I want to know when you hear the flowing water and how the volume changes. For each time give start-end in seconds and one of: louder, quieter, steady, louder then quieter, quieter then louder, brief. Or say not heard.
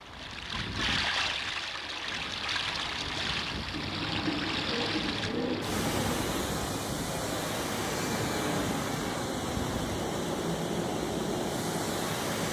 0.0-12.4 steady.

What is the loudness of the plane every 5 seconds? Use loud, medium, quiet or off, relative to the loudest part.
medium, loud, loud.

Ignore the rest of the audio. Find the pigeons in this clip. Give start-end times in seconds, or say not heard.
3.7-6.3.